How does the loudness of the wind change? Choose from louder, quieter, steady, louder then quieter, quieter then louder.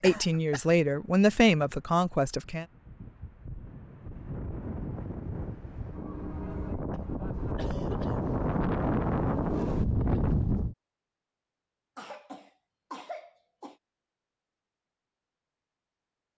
louder.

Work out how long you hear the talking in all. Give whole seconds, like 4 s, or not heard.
3 s.